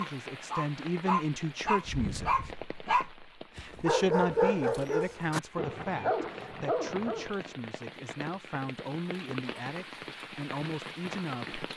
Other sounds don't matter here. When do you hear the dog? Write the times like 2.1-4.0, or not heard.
0.0-7.3.